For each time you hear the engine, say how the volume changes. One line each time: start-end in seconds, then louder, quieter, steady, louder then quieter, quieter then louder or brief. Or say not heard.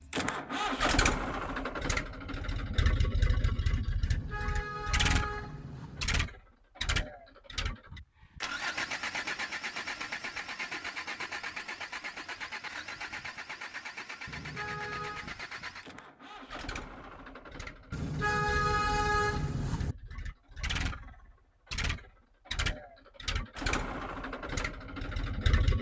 0.0-25.7 quieter then louder.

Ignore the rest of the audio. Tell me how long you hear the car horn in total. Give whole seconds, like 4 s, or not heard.
5 s.